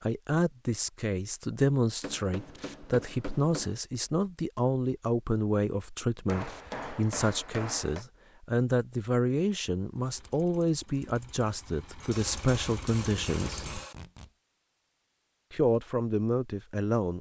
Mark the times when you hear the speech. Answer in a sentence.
You can hear the speech from 0.0 to 13.8 s and from 15.5 to 17.1 s.